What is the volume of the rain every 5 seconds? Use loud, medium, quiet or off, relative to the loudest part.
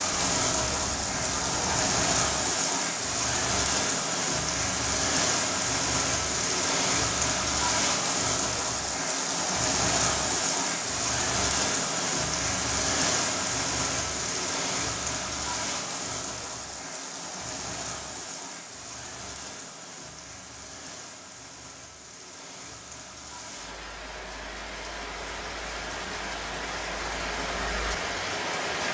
loud, loud, loud, medium, quiet, medium.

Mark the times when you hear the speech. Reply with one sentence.
You can't hear the speech here.